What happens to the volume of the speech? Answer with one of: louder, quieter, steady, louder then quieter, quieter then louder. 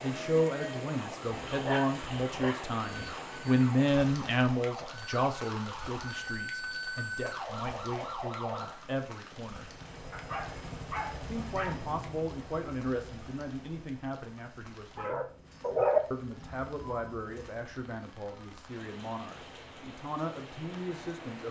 quieter.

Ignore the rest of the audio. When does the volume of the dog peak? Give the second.
16 s.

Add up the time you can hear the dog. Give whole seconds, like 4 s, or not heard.
5 s.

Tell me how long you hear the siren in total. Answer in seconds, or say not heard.
9 s.